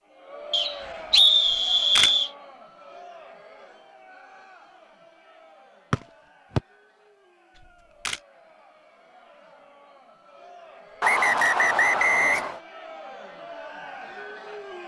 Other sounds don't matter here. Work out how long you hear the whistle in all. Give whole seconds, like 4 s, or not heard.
4 s.